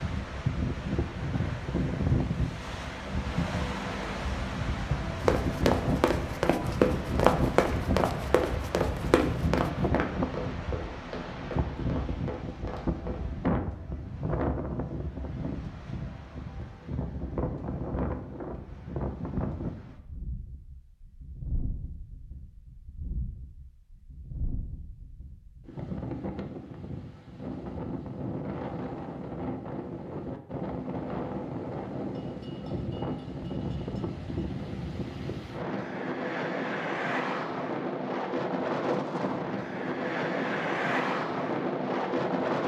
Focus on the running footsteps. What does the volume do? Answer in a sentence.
The volume of the running footsteps goes down.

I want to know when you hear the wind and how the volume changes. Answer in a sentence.
You can hear the wind from 0.0 to 42.6 s, getting quieter then louder.